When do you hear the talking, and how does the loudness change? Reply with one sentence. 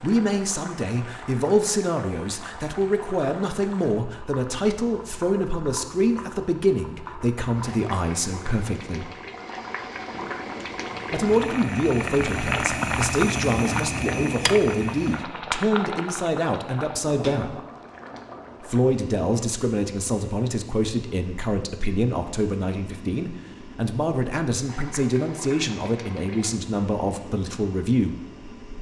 The talking can be heard from 0.0 to 9.1 s, at a steady volume; from 11.1 to 17.6 s, at a steady volume; and from 18.6 to 28.2 s, at a steady volume.